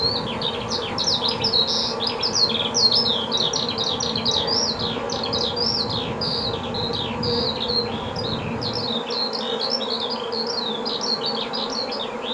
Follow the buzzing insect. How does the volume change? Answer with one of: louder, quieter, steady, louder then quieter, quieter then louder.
steady.